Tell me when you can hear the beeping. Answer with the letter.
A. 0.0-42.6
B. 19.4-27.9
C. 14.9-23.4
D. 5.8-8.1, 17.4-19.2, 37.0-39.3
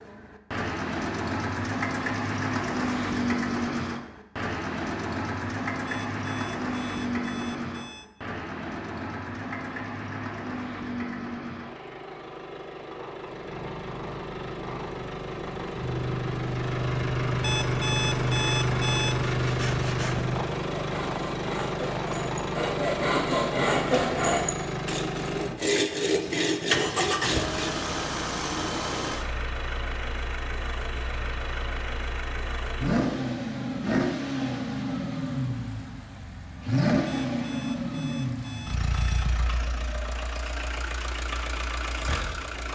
D.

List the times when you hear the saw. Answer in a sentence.
You can hear the saw from 19.4 to 27.9 s.